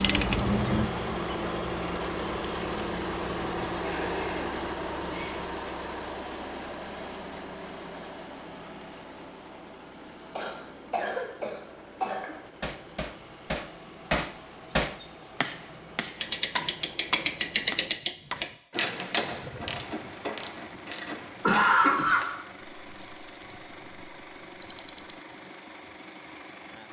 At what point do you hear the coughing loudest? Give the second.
22 s.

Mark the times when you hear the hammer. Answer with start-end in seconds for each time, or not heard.
12.6-18.6.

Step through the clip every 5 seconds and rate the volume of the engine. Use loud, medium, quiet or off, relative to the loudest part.
loud, medium, quiet, quiet, quiet, quiet.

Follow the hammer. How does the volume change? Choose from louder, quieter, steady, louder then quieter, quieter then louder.
louder then quieter.